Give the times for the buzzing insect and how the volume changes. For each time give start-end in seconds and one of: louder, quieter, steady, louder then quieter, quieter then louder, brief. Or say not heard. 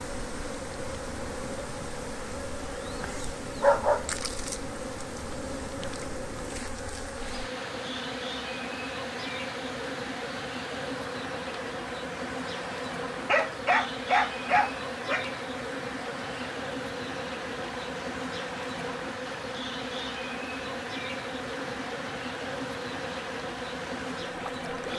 0.0-24.9 steady.